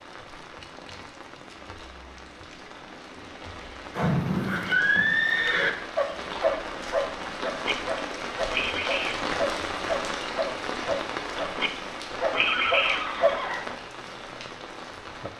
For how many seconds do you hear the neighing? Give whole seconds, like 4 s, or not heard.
3 s.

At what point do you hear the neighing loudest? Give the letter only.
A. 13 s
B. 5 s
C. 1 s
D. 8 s
B.